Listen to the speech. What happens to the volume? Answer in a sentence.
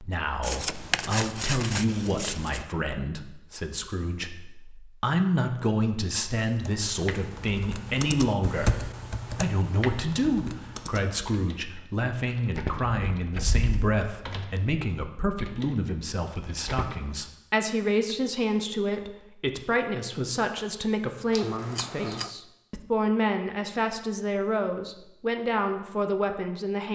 The volume of the speech stays about the same.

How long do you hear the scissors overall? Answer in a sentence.
You can hear the scissors for 4 seconds altogether.